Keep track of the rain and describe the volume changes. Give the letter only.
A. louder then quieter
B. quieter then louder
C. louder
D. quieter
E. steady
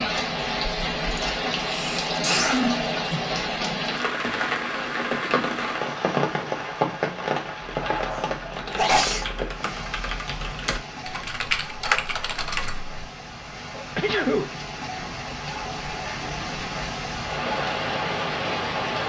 B.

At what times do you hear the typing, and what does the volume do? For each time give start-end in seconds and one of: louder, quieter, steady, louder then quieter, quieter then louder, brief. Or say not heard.
7.7-13.0 louder.